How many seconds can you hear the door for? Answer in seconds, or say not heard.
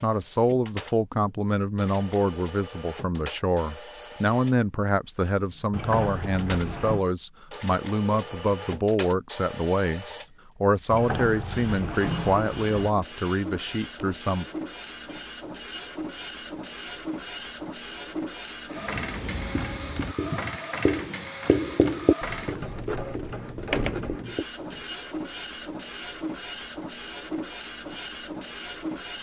5 s.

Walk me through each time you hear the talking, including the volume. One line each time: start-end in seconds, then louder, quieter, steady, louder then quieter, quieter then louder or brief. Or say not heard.
0.0-14.4 steady.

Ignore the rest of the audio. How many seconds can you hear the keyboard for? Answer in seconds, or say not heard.
not heard.